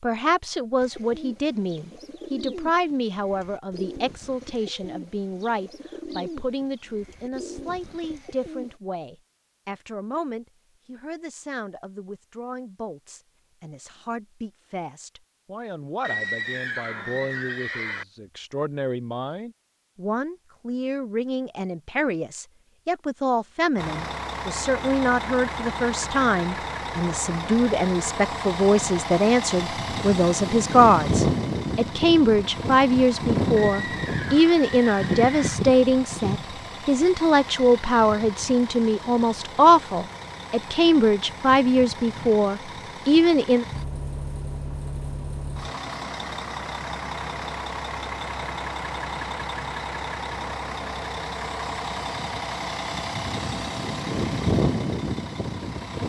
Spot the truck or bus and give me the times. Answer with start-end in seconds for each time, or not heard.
23.8-56.0.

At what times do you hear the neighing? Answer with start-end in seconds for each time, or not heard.
16.0-18.1, 33.5-35.6.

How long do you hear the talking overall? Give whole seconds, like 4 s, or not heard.
44 s.